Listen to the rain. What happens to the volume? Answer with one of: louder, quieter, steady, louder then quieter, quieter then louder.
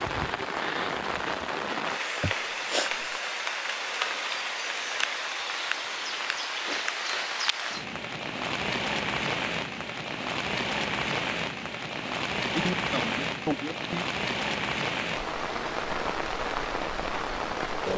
steady.